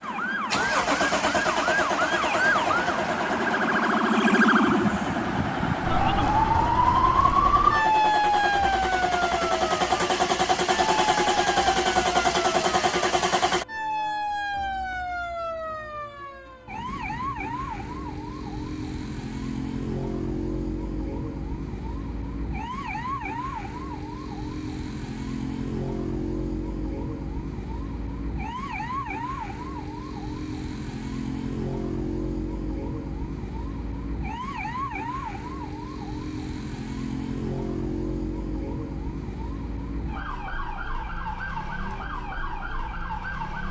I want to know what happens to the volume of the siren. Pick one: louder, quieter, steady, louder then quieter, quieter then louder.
quieter.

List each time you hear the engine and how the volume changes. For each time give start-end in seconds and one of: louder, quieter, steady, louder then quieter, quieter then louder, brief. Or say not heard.
0.0-13.7 quieter then louder.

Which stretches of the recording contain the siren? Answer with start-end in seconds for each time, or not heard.
0.0-43.6.